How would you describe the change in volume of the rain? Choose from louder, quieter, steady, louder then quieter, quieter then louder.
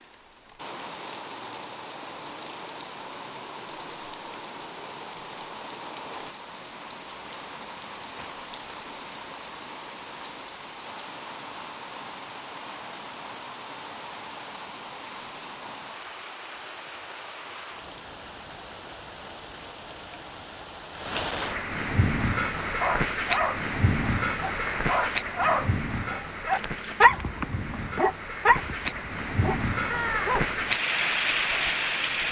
louder.